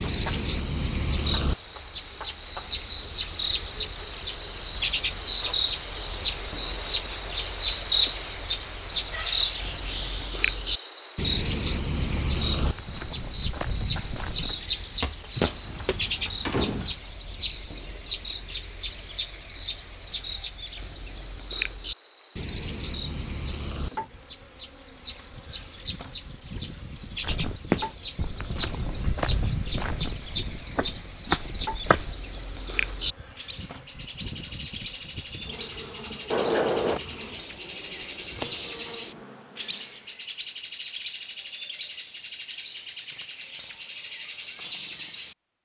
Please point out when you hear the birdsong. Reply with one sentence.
You can hear the birdsong from 0.0 to 45.6 s.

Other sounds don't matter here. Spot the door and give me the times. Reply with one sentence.
The door can be heard from 15.3 to 17.0 s and from 36.3 to 37.0 s.